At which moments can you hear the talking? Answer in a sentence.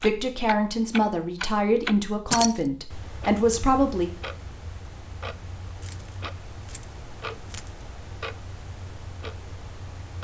You can hear the talking from 0.0 to 4.1 s.